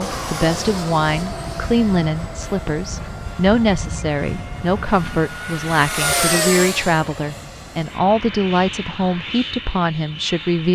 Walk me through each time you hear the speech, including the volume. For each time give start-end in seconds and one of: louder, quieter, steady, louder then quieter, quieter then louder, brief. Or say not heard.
0.0-10.7 steady.